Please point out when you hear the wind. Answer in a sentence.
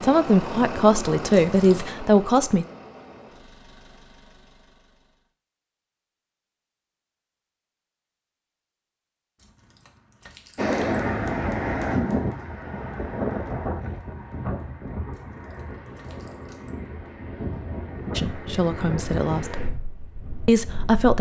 You can hear the wind from 10.6 to 21.1 s.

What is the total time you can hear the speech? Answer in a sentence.
You can hear the speech for 5 seconds altogether.